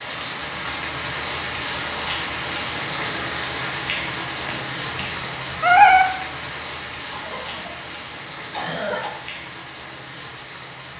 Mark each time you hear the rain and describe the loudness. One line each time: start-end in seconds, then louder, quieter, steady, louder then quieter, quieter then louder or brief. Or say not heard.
0.0-10.9 quieter.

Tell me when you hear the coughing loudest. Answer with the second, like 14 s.
9 s.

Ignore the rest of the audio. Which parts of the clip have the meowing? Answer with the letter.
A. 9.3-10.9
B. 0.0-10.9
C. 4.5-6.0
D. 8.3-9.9
C.